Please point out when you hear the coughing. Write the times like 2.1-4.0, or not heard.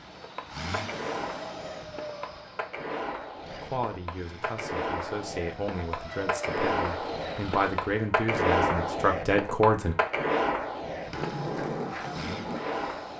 not heard.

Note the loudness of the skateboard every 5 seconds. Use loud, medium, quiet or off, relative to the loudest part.
medium, loud, loud.